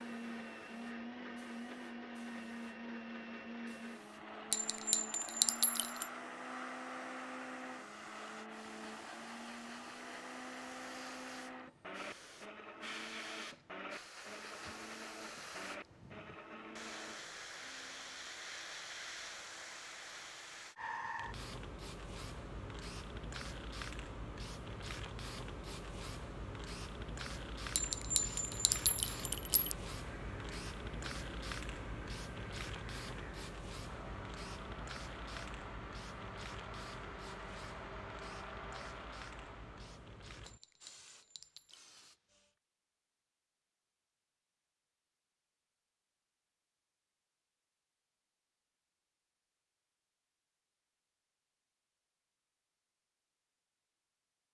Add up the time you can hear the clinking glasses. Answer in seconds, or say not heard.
5 s.